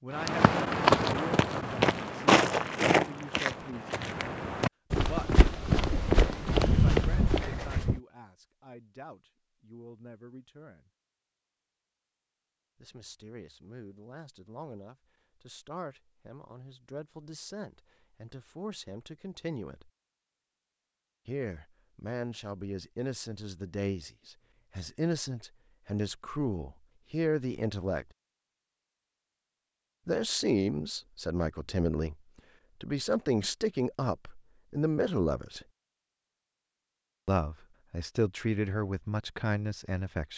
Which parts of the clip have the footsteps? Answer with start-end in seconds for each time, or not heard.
0.1-8.0.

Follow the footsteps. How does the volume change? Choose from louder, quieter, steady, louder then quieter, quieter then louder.
quieter then louder.